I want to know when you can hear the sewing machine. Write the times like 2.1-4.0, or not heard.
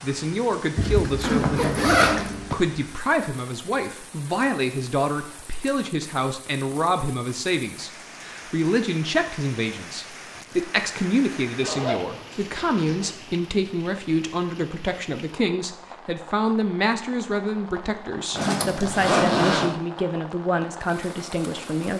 not heard.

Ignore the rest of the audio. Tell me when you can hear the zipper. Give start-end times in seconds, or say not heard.
0.8-2.5, 11.5-13.1, 18.4-19.8.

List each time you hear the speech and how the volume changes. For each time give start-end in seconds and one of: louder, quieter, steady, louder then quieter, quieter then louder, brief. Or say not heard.
0.0-21.9 steady.